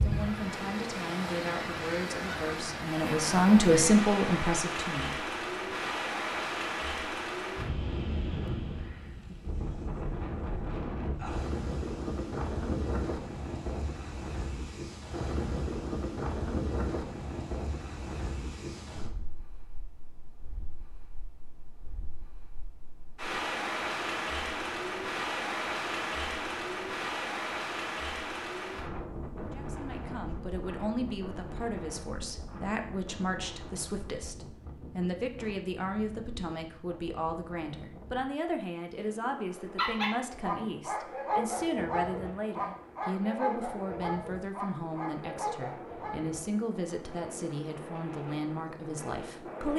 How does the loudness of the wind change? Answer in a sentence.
The loudness of the wind goes down.